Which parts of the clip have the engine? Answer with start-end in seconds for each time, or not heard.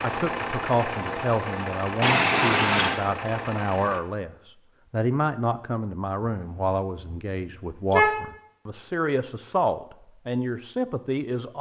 0.0-4.0.